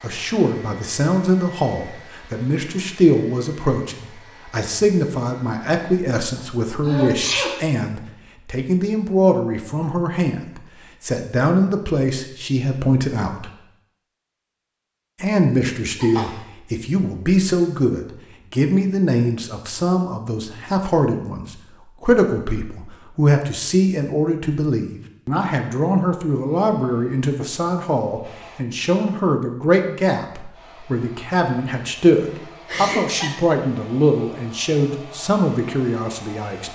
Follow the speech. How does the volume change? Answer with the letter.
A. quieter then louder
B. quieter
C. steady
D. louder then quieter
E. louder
C.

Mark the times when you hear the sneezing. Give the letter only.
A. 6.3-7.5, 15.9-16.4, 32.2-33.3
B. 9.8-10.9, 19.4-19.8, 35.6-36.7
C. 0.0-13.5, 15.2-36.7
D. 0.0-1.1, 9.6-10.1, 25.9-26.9
A.